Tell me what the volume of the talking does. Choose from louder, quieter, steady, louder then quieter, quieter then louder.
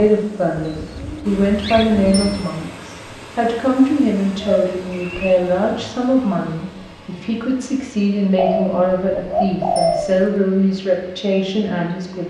steady.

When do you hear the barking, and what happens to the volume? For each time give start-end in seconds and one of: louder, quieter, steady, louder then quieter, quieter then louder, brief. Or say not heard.
not heard.